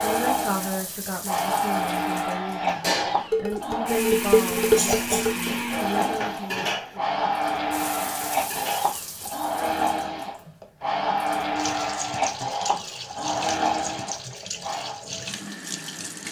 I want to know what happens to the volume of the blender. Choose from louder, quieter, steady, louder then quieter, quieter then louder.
steady.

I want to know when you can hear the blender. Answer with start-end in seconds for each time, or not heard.
0.0-15.0.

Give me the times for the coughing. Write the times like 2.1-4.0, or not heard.
4.8-5.5.